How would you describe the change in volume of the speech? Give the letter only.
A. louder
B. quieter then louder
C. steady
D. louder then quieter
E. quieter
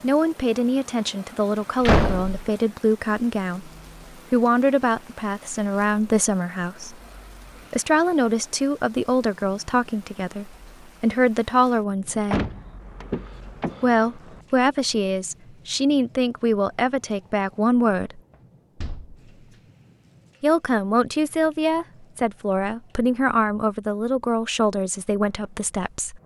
C.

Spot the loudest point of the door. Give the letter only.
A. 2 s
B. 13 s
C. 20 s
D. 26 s
A.